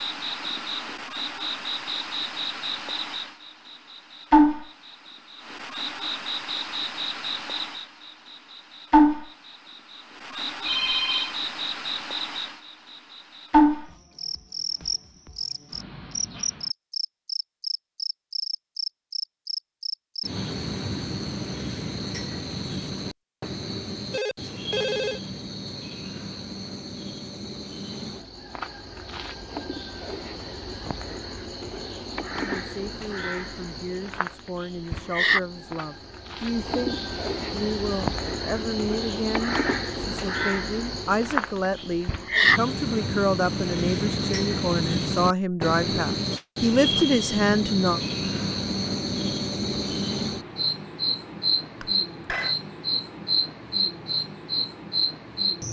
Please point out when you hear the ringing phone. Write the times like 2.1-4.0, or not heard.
10.7-11.3, 24.1-25.2, 51.8-52.5.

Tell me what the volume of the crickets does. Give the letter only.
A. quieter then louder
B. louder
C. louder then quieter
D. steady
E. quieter
A.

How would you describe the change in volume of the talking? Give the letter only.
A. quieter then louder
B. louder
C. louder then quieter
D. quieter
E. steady
B.